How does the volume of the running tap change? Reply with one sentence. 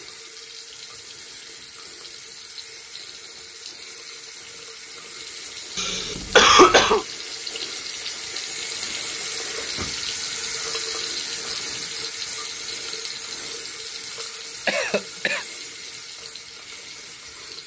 The volume of the running tap goes up, then down.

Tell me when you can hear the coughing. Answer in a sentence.
The coughing can be heard from 5.8 to 7.0 s and from 14.7 to 15.4 s.